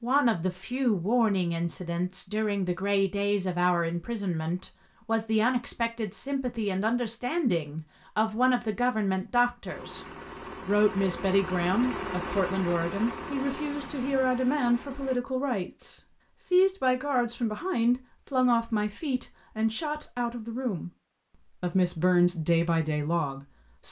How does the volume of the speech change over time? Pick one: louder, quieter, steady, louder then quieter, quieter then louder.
steady.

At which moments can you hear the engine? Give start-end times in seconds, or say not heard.
9.7-15.2.